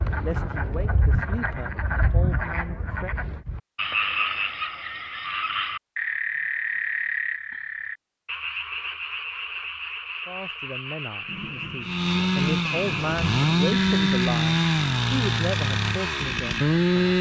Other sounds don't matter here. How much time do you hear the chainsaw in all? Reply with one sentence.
You can hear the chainsaw for 5 seconds altogether.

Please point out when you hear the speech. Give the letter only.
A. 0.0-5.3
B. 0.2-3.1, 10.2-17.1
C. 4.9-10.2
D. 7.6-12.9
B.